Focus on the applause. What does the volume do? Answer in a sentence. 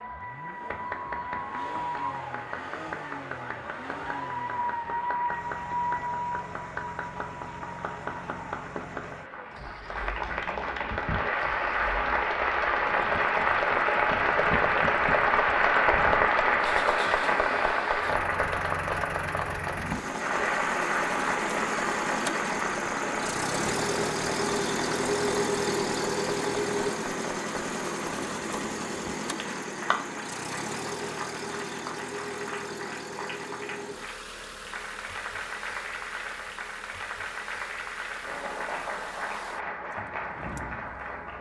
The loudness of the applause goes up, then down.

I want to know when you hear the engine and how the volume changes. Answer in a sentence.
You can hear the engine from 0.0 to 41.3 s, getting louder then quieter.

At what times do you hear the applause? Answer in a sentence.
You can hear the applause from 0.0 to 41.3 s.